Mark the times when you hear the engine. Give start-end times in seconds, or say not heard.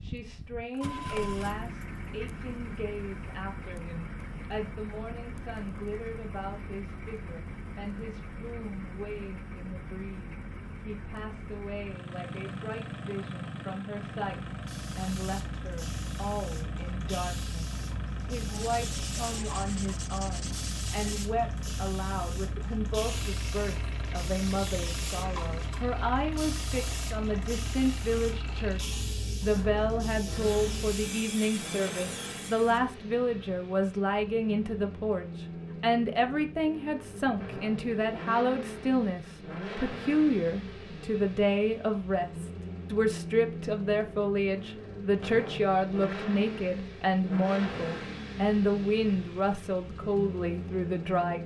0.0-51.4.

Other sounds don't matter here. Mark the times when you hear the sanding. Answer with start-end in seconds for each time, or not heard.
18.4-21.3.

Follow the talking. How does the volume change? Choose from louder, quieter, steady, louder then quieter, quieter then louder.
louder.